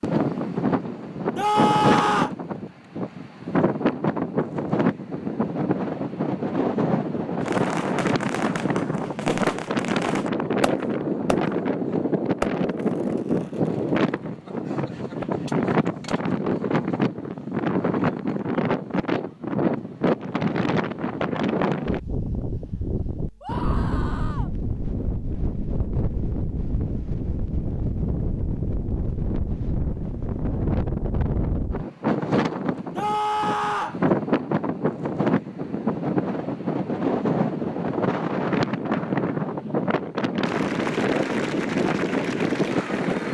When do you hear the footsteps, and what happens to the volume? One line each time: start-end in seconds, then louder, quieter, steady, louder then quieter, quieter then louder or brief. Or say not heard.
not heard.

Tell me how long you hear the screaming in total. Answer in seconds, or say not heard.
3 s.